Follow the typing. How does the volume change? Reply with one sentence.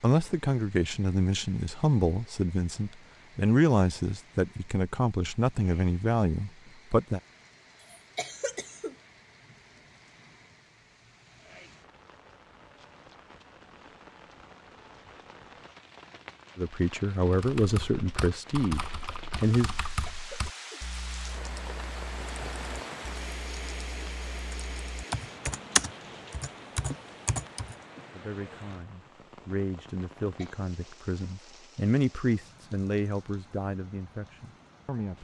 The volume of the typing goes down, then up.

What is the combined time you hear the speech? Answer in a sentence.
You can hear the speech for 17 seconds altogether.